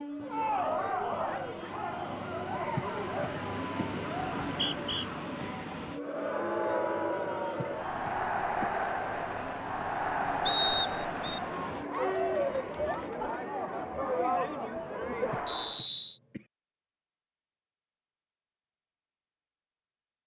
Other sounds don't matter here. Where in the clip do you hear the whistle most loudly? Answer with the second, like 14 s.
11 s.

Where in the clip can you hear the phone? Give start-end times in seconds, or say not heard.
not heard.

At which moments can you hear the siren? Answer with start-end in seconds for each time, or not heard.
not heard.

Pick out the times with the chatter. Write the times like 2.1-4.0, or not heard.
0.1-15.8.